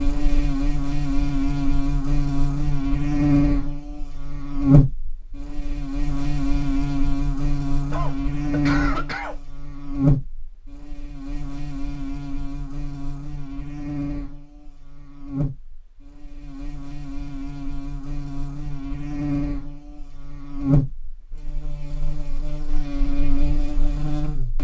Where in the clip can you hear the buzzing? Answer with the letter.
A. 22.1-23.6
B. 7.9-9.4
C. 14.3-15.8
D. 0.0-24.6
D.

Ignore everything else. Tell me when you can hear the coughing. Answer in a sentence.
You can hear the coughing from 7.9 to 9.4 s.